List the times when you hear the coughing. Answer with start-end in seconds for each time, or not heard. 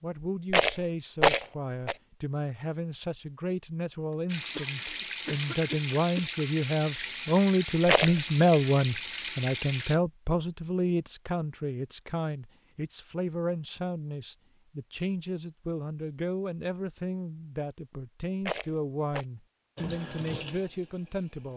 4.5-6.2.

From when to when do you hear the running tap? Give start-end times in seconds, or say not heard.
4.2-10.0, 19.8-21.5.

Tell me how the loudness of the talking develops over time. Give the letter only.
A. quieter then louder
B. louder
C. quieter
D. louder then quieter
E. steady
D.